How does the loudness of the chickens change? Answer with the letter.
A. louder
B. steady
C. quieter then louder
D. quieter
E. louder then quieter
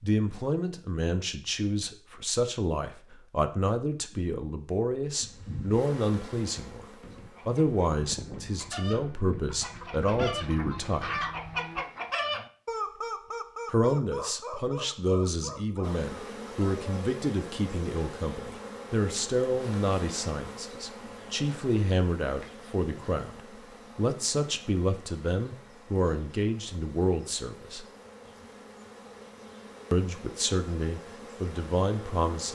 E.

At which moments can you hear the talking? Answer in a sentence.
The talking can be heard from 0.0 to 6.8 s, from 7.5 to 11.2 s, from 13.7 to 27.9 s and from 29.9 to 32.5 s.